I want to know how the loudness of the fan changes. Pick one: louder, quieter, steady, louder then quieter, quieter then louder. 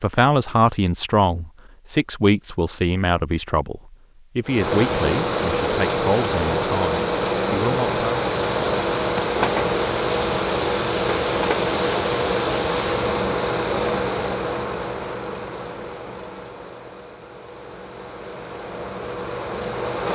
quieter.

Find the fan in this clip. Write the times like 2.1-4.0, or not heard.
4.5-20.0.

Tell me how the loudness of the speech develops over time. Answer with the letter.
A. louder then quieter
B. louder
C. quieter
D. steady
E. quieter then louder
C.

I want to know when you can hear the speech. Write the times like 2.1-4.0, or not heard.
0.0-8.2.